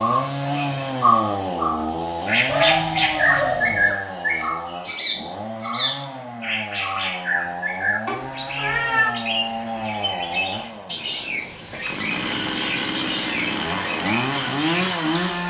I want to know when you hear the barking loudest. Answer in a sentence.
The loudest moment of the barking is at 3 seconds.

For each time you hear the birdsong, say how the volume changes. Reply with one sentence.
You can hear the birdsong from 0.0 to 15.4 s, getting quieter.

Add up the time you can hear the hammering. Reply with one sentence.
The hammering can't be heard in this clip.